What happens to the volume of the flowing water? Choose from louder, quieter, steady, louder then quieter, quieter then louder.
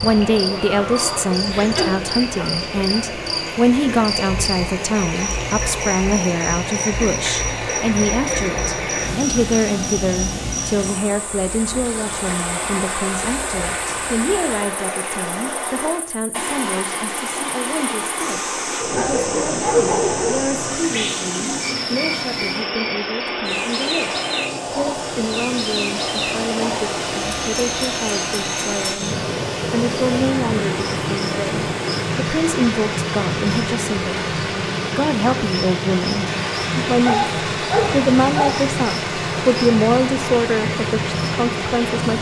steady.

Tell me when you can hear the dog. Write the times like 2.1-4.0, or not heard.
0.6-2.5, 18.8-20.5, 37.0-38.6.